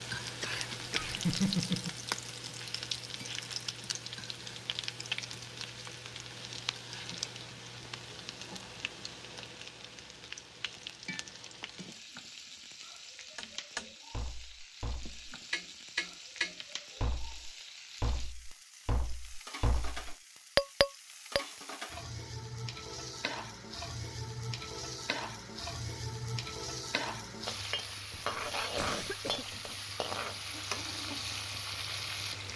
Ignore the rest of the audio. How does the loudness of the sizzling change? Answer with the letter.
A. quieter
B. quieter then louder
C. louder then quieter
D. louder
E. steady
B.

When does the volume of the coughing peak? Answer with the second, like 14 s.
1 s.